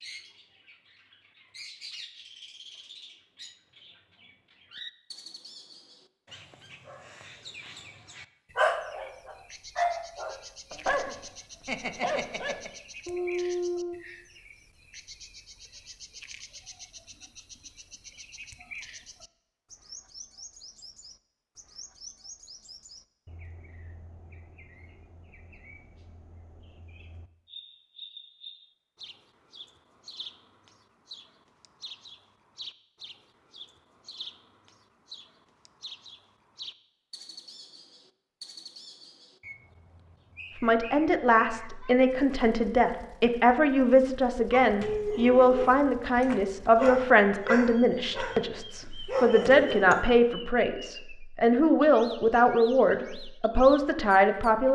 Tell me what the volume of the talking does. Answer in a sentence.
The loudness of the talking stays about the same.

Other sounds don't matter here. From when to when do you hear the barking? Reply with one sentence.
You can hear the barking from 8.6 to 14.0 s and from 44.5 to 50.1 s.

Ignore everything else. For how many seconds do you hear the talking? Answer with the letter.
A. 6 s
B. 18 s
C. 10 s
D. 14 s
D.